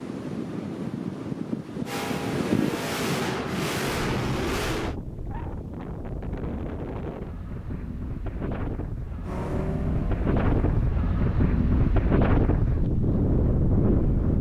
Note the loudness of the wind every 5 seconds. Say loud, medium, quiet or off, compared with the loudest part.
medium, medium, loud.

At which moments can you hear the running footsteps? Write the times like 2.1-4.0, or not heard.
not heard.